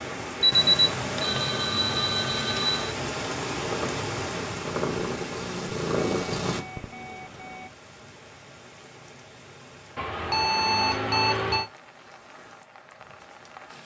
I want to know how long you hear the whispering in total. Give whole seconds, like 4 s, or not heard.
not heard.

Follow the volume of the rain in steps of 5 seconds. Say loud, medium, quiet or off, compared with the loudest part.
loud, quiet, quiet.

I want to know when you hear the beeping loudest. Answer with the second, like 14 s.
1 s.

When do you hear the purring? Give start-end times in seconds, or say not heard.
3.5-6.6.